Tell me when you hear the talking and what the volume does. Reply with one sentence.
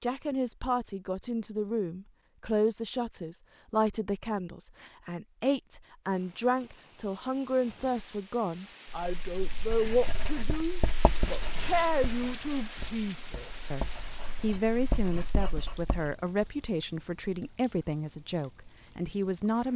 The talking can be heard from 0.0 to 19.7 s, at a steady volume.